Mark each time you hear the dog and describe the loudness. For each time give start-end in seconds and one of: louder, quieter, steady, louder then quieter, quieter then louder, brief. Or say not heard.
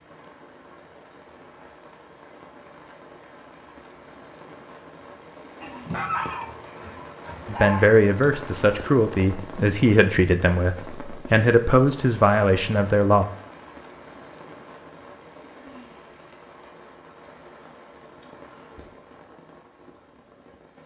not heard.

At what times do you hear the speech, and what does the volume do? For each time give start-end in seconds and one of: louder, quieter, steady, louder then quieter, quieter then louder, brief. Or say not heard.
7.5-13.2 steady.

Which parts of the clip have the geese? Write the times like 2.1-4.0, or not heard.
5.6-7.9.